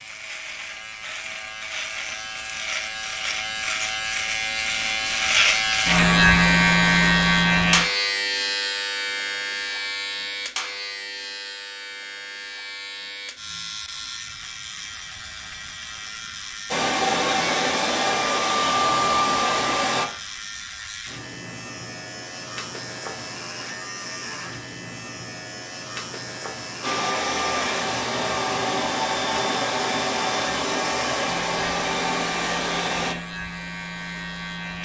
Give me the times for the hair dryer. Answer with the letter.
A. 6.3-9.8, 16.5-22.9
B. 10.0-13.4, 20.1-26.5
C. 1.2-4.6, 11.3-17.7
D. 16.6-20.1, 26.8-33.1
D.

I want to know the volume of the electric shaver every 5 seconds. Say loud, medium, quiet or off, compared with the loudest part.
medium, loud, quiet, quiet, quiet, quiet, quiet.